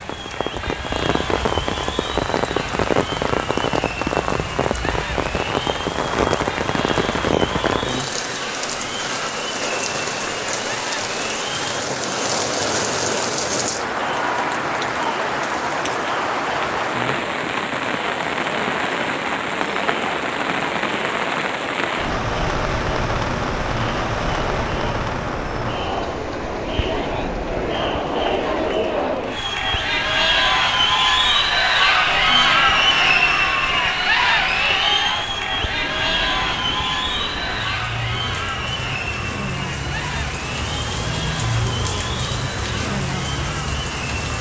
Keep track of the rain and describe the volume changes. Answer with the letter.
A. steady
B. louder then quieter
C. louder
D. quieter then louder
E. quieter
D.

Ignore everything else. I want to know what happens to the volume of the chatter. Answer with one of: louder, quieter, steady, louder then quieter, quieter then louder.
louder then quieter.